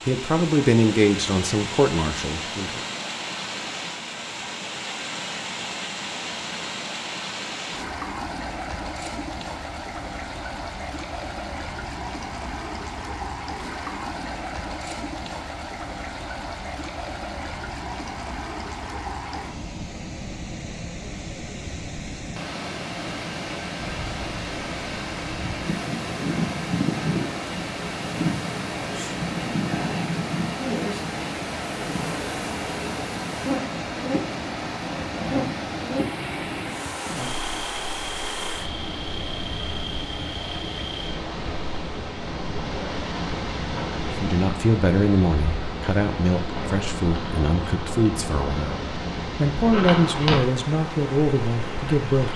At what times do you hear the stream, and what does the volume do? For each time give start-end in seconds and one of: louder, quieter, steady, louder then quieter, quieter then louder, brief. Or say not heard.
0.0-52.3 steady.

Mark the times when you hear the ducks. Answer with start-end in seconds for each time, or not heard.
not heard.